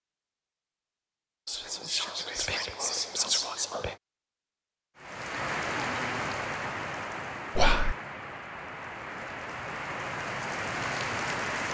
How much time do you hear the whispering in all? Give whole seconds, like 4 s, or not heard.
3 s.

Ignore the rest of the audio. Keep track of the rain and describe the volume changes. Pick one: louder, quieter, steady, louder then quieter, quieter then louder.
quieter then louder.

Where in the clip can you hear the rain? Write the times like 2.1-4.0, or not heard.
5.0-11.6.